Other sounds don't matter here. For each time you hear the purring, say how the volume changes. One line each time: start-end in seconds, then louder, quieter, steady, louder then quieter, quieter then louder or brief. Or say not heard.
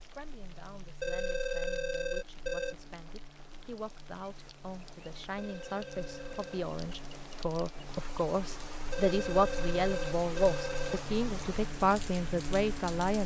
not heard.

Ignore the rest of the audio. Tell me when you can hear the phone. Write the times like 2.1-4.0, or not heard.
1.0-2.8, 5.3-6.6, 8.9-11.1.